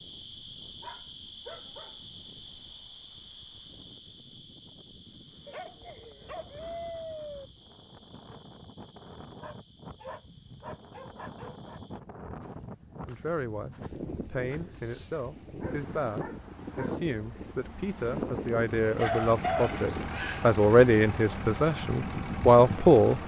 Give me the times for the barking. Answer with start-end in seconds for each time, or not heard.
0.8-2.0, 5.5-7.5, 9.4-11.8, 15.6-17.0, 18.8-20.5.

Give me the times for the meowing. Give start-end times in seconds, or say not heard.
not heard.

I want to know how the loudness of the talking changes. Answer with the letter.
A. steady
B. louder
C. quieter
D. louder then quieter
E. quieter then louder
B.